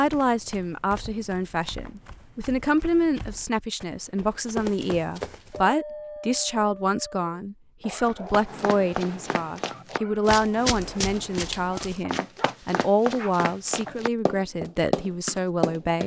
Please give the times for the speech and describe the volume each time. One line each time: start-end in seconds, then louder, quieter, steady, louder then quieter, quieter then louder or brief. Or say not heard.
0.0-16.0 steady.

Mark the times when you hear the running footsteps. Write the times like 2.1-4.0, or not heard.
0.0-5.6, 8.1-16.0.